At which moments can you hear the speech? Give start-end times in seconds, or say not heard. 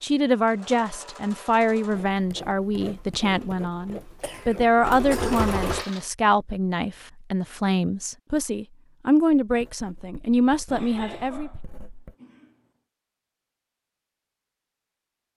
0.0-11.5.